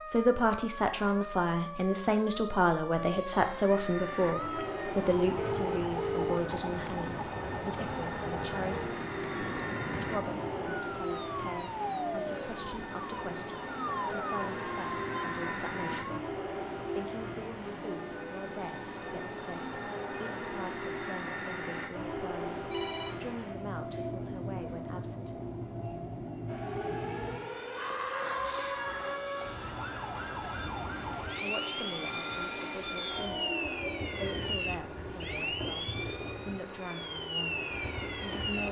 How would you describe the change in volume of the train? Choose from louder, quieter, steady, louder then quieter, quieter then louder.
steady.